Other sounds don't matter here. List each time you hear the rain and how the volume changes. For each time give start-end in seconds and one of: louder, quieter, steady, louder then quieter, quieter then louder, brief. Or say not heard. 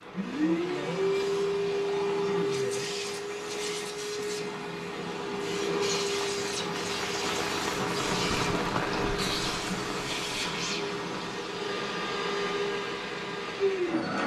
0.0-14.1 louder then quieter.